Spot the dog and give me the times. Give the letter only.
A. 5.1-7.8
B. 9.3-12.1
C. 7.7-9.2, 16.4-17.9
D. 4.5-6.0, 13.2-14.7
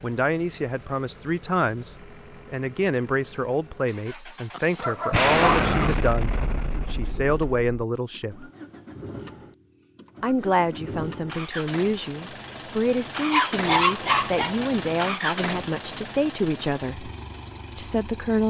D.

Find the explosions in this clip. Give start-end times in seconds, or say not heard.
5.1-7.8.